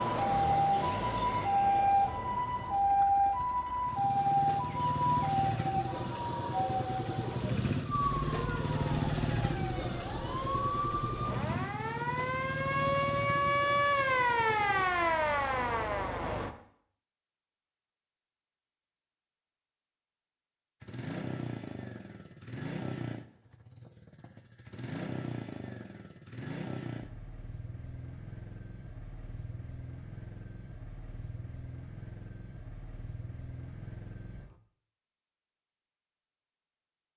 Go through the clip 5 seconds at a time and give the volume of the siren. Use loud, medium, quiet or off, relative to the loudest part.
loud, medium, loud, loud, off, off, off, off.